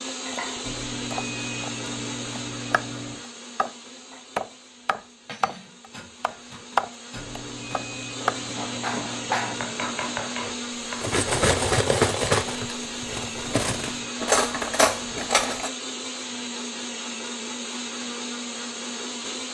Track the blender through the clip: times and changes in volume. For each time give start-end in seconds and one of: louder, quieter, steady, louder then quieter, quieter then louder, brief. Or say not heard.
0.0-19.4 quieter then louder.